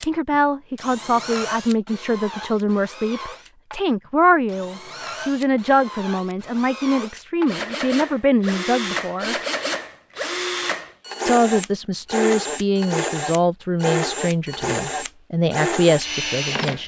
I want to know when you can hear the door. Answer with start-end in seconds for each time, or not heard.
not heard.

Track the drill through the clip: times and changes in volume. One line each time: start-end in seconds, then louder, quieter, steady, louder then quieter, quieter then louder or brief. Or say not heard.
0.0-16.8 louder.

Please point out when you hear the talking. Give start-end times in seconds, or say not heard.
0.0-9.3, 11.2-16.8.